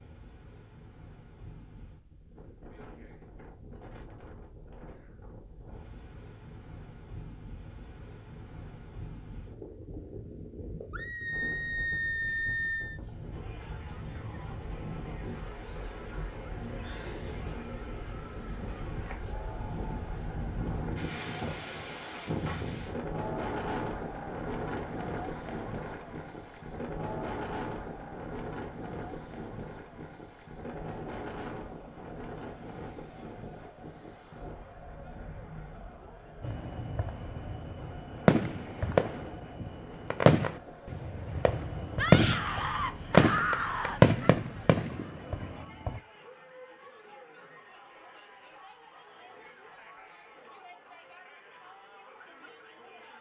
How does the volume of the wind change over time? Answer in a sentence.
The volume of the wind goes up, then down.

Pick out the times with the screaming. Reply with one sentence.
The screaming can be heard from 10.9 to 13.0 s and from 42.0 to 44.4 s.